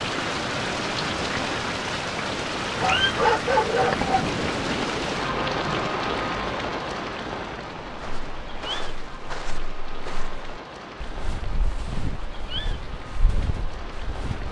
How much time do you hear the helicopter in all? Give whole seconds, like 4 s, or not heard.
not heard.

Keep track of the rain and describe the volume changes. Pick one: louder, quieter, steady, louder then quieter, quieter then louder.
quieter.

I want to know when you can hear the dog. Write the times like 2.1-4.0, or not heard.
2.8-4.3.